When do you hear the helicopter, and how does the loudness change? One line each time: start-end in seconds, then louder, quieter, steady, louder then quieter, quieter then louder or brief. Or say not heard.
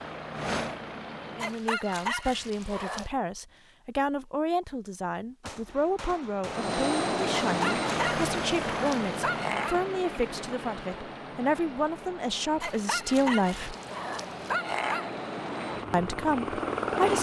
0.0-1.6 brief
6.5-17.1 quieter then louder.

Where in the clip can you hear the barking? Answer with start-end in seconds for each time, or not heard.
1.4-3.1, 7.4-9.8, 12.6-15.1.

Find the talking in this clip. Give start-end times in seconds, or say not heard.
1.4-13.8, 15.9-17.1.